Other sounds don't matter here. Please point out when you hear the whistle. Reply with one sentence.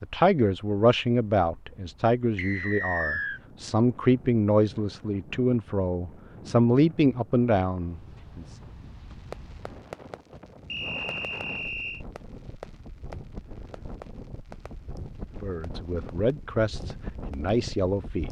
You can hear the whistle from 2.4 to 3.4 s and from 10.7 to 12.1 s.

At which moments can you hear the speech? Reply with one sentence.
You can hear the speech from 0.0 to 8.4 s and from 15.4 to 18.2 s.